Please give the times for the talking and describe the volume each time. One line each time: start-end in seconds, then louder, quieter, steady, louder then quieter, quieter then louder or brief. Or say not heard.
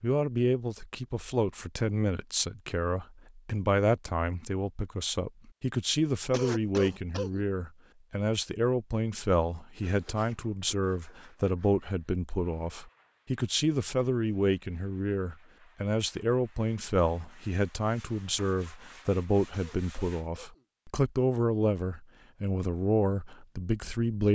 0.0-24.2 steady.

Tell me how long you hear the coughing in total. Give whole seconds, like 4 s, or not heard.
2 s.